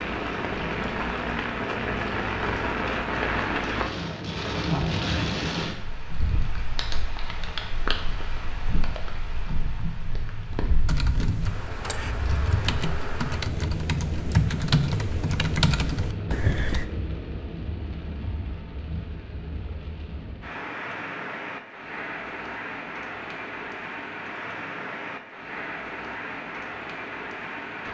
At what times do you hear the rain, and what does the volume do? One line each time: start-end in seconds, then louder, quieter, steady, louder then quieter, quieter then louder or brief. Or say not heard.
0.0-27.8 quieter.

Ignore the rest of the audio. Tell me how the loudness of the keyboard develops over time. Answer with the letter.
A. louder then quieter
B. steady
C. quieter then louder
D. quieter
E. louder
E.